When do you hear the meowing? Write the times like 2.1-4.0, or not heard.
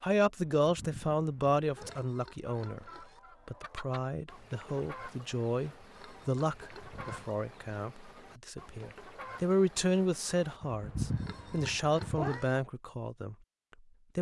0.6-2.0, 6.7-7.3, 10.6-12.4.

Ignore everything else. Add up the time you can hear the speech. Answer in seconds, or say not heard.
13 s.